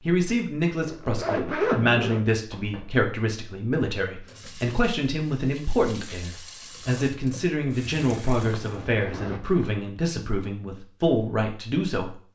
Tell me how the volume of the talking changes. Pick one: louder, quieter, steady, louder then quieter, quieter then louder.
steady.